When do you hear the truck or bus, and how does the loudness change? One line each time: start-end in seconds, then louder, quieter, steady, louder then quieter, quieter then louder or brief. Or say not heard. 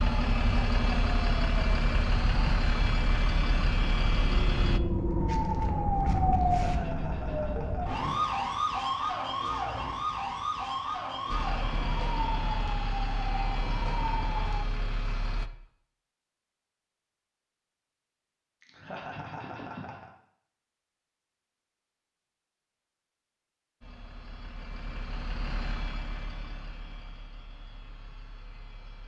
0.0-4.8 steady
11.2-15.5 steady
23.8-29.0 louder then quieter.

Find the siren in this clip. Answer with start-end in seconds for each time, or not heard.
0.0-14.6.